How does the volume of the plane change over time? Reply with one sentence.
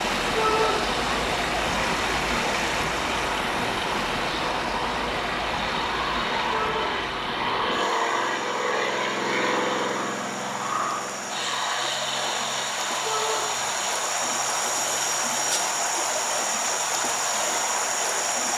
The loudness of the plane goes up, then down.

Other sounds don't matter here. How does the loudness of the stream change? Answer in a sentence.
The loudness of the stream goes down, then up.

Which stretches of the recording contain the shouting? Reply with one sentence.
You can hear the shouting from 0.3 to 0.8 s, from 6.5 to 6.9 s and from 13.0 to 13.4 s.